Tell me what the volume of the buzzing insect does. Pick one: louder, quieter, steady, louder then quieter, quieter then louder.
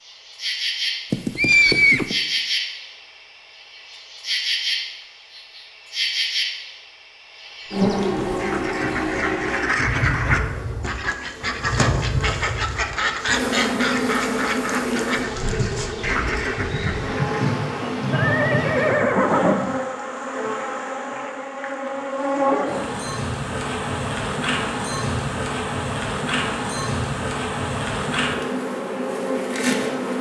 steady.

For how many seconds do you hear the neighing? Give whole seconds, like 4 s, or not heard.
3 s.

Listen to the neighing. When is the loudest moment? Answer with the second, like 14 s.
2 s.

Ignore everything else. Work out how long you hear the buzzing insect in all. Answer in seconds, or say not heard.
30 s.